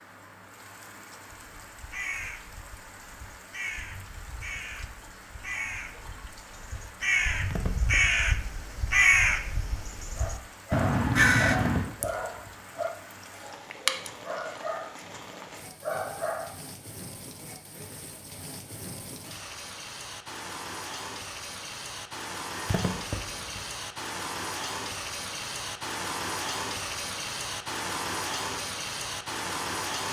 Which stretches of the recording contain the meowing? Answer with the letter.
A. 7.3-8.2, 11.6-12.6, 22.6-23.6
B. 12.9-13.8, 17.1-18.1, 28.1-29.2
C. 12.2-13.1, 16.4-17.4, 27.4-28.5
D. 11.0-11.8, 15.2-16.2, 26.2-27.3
A.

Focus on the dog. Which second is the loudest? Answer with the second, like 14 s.
14 s.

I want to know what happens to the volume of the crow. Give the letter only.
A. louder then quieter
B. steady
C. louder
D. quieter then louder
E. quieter
C.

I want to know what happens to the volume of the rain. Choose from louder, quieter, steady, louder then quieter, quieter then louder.
louder.